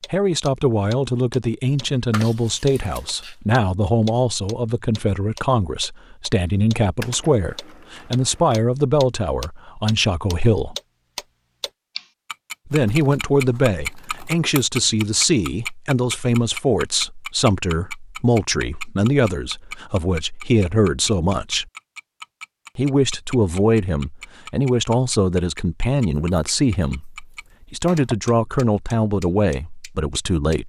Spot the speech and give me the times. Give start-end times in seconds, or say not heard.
0.1-10.8, 12.7-21.6, 22.8-30.6.